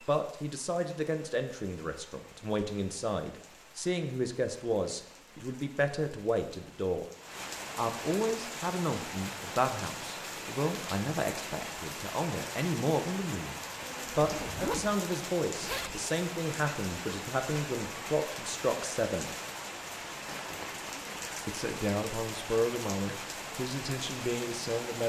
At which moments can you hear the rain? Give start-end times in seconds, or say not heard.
0.0-25.0.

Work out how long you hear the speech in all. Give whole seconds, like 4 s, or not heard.
22 s.